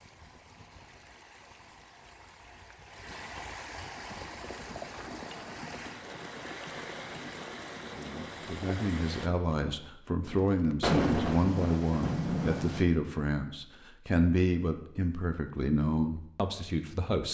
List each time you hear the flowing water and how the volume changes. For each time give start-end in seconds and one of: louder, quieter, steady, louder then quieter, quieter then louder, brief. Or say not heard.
0.0-9.3 louder.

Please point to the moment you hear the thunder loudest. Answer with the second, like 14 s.
11 s.